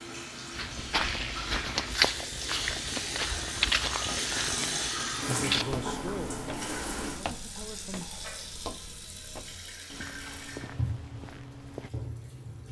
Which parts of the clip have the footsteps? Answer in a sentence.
The footsteps can be heard from 0.5 to 11.9 s.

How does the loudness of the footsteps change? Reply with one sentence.
The loudness of the footsteps goes down.